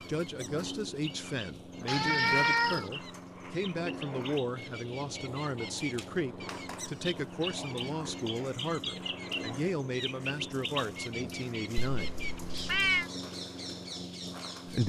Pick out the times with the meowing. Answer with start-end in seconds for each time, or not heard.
1.9-2.9, 11.9-13.1.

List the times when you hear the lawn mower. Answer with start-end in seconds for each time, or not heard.
0.0-14.8.